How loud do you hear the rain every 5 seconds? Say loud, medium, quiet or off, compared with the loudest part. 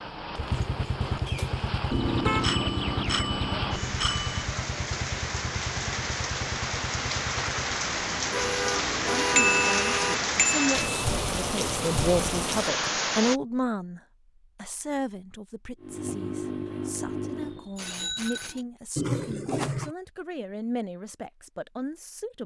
medium, loud, loud, off, off.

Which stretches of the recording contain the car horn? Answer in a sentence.
You can hear the car horn from 1.2 to 2.6 s, from 8.3 to 10.2 s and from 18.9 to 19.9 s.